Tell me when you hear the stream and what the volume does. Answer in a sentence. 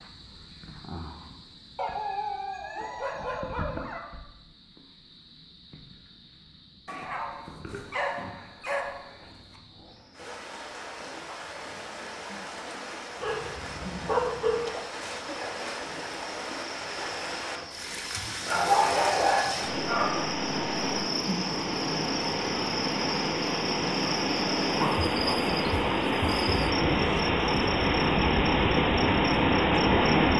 You can hear the stream from 10.1 to 30.3 s, getting louder.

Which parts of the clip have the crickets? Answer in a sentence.
The crickets can be heard from 0.0 to 30.3 s.